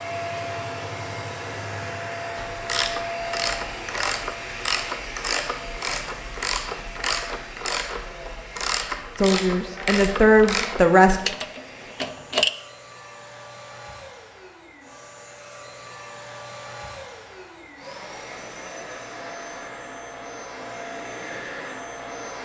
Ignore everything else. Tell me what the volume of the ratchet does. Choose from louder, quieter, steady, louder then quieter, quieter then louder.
steady.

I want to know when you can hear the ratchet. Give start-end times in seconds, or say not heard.
2.5-12.5.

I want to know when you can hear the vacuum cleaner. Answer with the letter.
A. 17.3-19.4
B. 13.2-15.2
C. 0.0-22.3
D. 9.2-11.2
C.